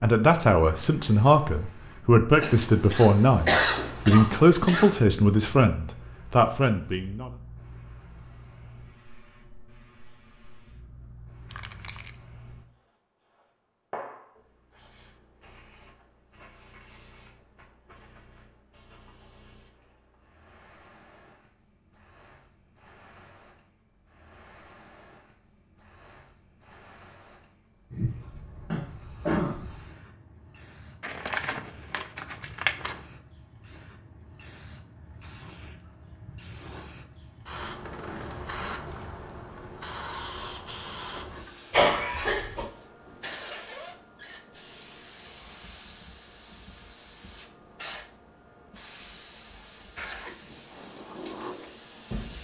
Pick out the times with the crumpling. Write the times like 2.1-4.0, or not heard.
11.4-12.2, 31.0-33.0.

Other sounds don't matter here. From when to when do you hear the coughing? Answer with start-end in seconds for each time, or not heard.
2.4-5.0, 28.7-29.7, 41.7-42.6.